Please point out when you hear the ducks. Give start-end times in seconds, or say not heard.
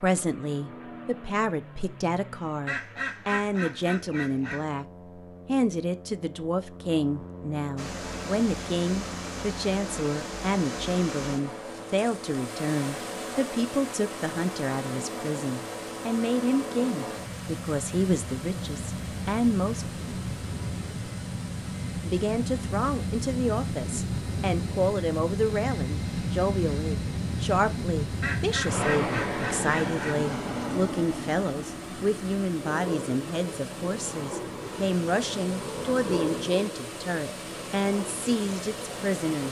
2.6-4.7, 28.2-30.2.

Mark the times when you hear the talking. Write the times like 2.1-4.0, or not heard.
0.0-4.8, 5.5-19.9, 22.1-39.4.